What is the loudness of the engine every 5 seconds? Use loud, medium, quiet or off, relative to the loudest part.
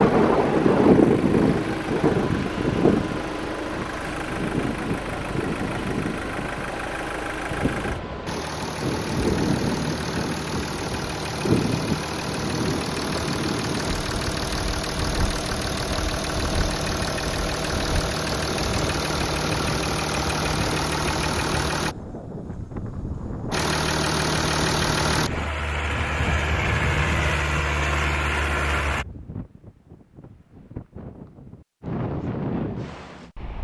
medium, medium, medium, loud, loud, loud, off.